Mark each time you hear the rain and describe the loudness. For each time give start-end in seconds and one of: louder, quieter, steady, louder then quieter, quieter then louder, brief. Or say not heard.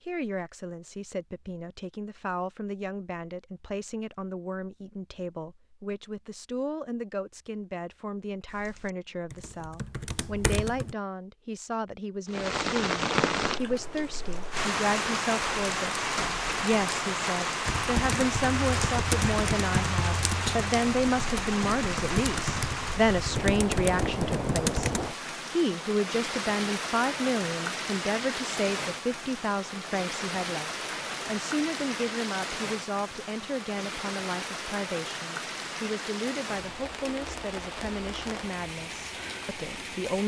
12.2-40.2 quieter.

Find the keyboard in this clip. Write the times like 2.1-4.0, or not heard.
8.4-10.9, 17.6-25.1.